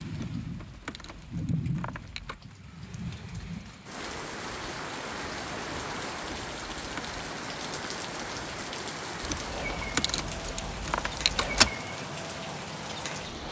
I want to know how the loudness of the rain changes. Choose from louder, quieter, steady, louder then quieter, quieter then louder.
steady.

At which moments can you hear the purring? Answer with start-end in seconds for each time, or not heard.
not heard.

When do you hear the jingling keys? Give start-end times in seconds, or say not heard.
0.1-2.5, 6.2-7.2, 9.2-11.7.